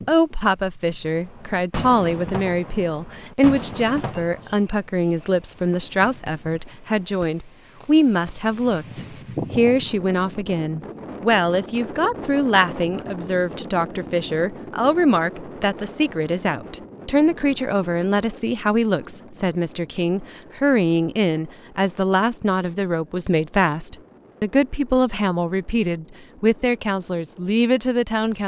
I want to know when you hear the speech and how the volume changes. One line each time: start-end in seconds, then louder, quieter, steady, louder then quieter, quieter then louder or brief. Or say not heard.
0.1-28.4 steady.